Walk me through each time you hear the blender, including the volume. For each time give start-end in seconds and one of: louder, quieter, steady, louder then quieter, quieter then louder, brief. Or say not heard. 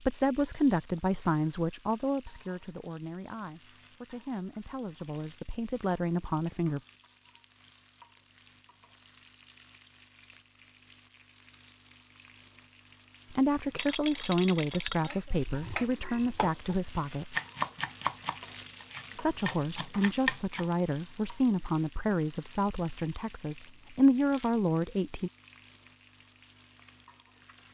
not heard.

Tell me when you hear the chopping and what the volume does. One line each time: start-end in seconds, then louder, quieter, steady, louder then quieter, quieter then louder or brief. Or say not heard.
15.1-20.6 quieter then louder.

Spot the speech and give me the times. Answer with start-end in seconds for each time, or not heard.
0.0-6.8, 13.3-17.4, 19.1-25.3.